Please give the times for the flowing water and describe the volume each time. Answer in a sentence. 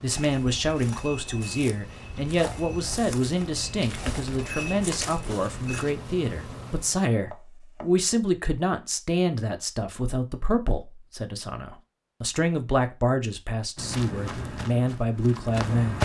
The flowing water can't be heard in this clip.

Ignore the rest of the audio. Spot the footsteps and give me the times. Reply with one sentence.
You can hear the footsteps from 0.1 to 6.0 s and from 13.8 to 16.0 s.